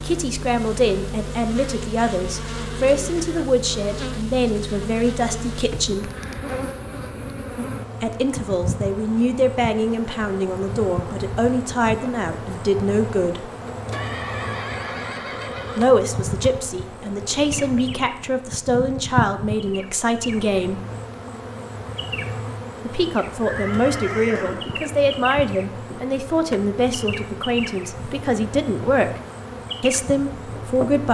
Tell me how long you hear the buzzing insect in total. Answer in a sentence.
The buzzing insect can be heard for 31 seconds in total.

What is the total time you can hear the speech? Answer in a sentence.
You can hear the speech for 24 seconds altogether.